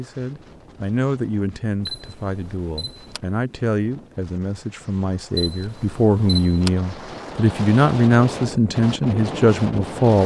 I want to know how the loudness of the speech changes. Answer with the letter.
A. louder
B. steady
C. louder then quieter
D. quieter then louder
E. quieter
A.